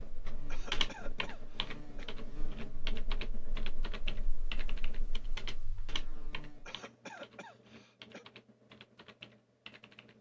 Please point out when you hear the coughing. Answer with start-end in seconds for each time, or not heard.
0.5-2.1, 6.7-8.2.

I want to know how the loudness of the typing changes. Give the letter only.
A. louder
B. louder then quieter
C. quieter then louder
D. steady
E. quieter
E.